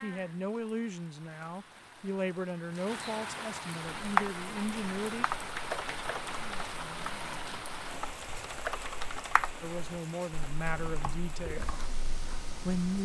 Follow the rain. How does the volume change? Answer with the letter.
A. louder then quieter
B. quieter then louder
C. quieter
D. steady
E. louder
A.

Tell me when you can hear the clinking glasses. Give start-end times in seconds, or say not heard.
not heard.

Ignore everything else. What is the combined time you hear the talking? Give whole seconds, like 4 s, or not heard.
8 s.